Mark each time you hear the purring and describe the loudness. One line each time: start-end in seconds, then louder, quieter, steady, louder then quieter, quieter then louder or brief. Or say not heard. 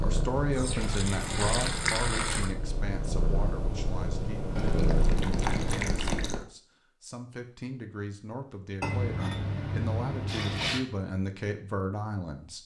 0.0-5.9 louder.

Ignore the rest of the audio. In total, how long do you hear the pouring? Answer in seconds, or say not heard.
6 s.